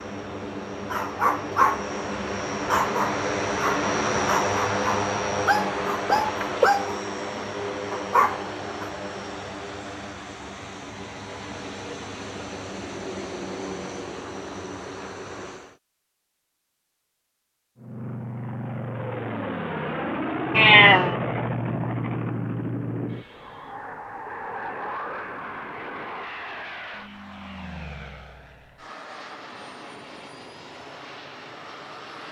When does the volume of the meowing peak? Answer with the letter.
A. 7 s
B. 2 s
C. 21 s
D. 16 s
C.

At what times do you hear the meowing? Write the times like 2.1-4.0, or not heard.
6.0-6.7, 20.6-21.1.